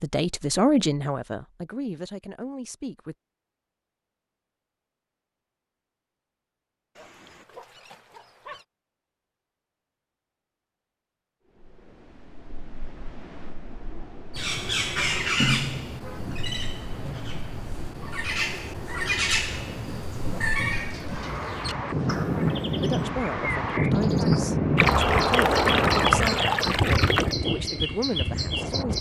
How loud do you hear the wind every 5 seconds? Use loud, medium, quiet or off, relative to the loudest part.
off, off, quiet, quiet, loud, loud.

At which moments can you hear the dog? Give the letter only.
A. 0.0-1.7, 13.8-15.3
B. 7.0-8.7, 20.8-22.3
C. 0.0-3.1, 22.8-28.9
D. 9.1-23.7
B.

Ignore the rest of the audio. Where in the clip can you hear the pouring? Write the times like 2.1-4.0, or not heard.
24.8-27.4.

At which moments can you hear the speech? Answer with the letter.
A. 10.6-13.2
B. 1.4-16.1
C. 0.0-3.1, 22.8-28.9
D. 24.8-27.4
C.